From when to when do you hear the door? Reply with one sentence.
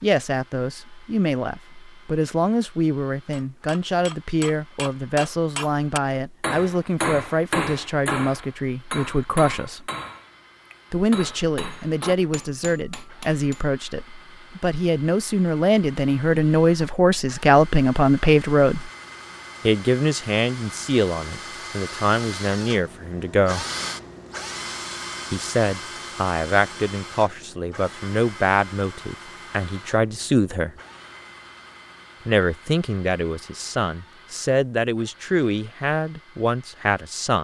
The door can't be heard in this clip.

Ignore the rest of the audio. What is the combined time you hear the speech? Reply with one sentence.
You can hear the speech for 32 seconds altogether.